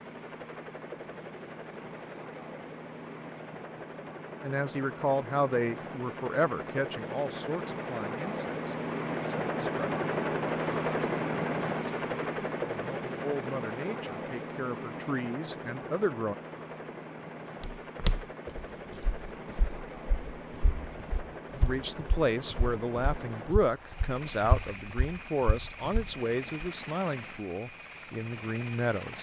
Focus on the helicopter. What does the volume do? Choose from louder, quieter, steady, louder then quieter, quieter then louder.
louder then quieter.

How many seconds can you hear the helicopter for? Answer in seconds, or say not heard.
29 s.